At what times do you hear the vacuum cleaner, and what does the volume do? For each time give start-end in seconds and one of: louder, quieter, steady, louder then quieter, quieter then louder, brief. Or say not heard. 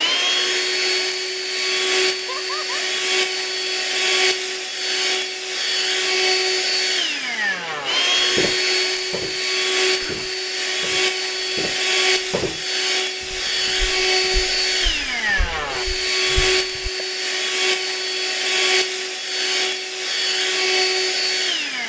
0.0-21.8 steady.